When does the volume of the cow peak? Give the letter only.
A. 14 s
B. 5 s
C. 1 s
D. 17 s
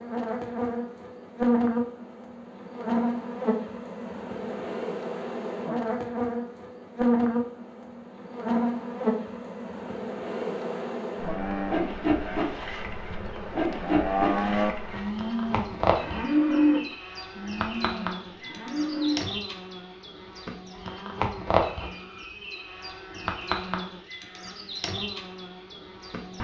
D.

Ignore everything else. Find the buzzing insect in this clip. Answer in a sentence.
The buzzing insect can be heard from 0.0 to 26.3 s.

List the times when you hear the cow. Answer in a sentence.
You can hear the cow from 11.1 to 19.2 s.